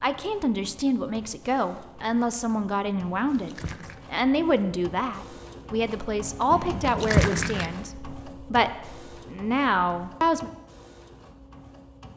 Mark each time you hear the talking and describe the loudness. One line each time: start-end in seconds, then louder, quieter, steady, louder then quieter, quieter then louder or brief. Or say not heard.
0.0-10.5 steady.